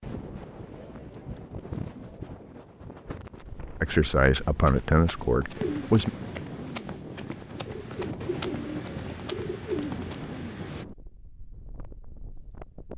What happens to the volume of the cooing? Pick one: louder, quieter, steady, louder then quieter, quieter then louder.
louder.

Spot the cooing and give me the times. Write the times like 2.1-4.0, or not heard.
5.5-10.8.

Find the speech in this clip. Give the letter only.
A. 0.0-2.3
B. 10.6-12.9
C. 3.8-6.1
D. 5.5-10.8
C.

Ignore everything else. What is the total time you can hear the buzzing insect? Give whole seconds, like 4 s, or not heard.
not heard.